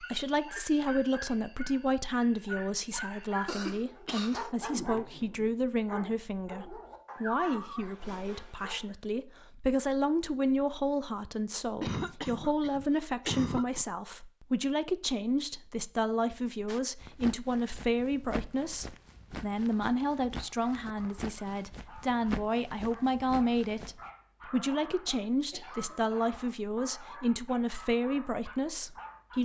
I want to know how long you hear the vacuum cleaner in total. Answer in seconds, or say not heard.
not heard.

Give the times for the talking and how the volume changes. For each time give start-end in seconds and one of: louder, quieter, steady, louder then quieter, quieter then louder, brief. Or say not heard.
0.0-29.4 steady.